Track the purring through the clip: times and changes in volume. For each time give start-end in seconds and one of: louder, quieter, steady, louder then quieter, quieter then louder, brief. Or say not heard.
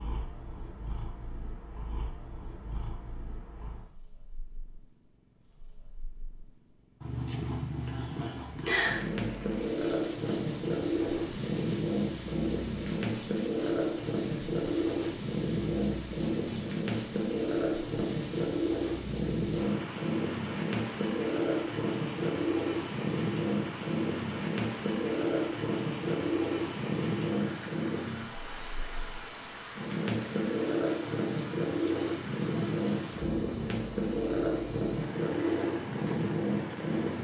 0.0-37.2 louder.